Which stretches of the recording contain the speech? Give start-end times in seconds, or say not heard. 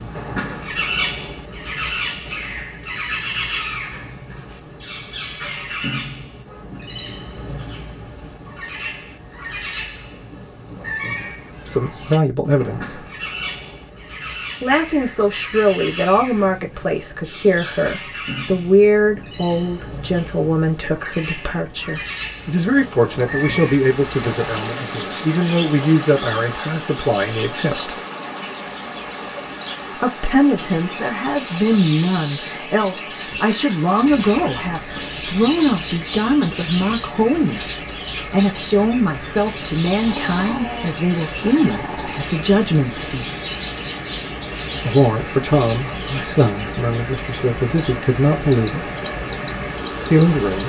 11.7-13.1, 14.6-28.0, 29.9-43.2, 44.8-48.9, 50.1-50.6.